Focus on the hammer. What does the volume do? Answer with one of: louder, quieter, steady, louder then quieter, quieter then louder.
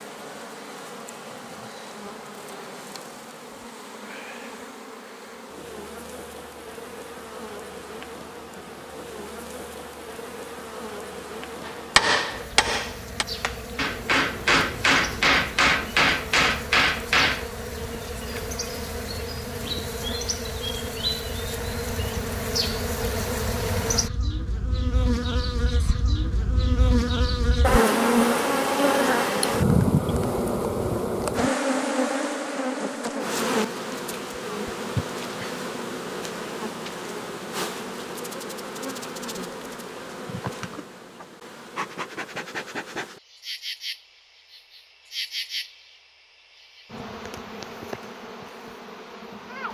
quieter then louder.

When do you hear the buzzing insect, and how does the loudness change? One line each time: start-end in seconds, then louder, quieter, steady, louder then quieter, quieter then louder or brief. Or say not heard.
0.0-49.7 louder then quieter.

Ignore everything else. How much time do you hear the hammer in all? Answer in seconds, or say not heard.
6 s.